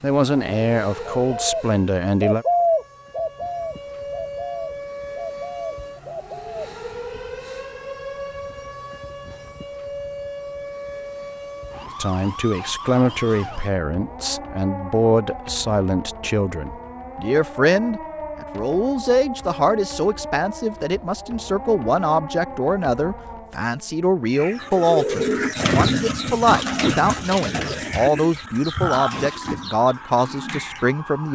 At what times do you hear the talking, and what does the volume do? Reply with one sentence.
The talking can be heard briefly from 0.0 to 2.5 s; and from 12.0 to 31.3 s, at a steady volume.